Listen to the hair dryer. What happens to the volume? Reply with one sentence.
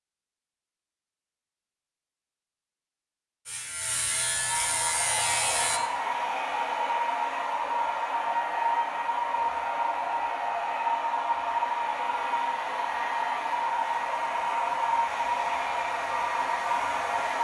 The volume of the hair dryer stays about the same.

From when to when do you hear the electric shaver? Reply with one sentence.
The electric shaver can be heard from 3.5 to 5.8 s.